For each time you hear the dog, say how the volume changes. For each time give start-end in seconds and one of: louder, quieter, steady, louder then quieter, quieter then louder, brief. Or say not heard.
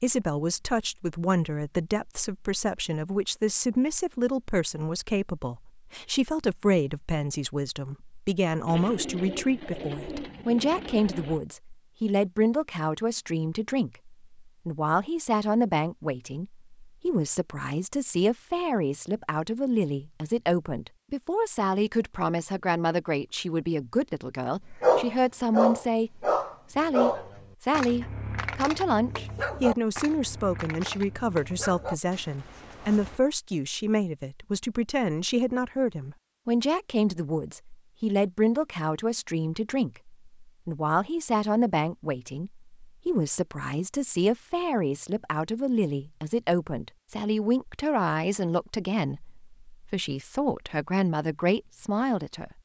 24.8-33.2 quieter.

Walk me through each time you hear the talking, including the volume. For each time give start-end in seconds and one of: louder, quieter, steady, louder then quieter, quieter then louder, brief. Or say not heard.
0.0-52.5 steady.